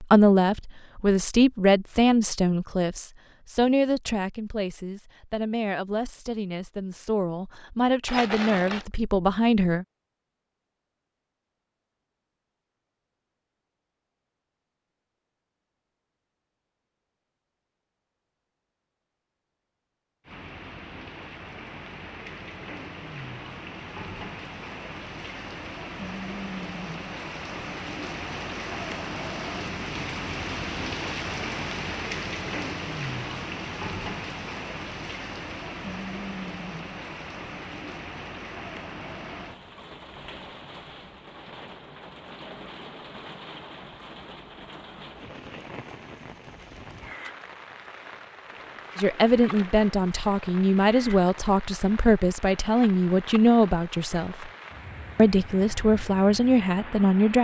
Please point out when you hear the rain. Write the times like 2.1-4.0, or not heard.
20.2-57.3.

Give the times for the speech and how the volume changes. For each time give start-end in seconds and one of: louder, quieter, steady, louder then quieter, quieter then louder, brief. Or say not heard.
0.0-9.8 quieter then louder
49.0-54.5 steady
55.1-57.3 brief.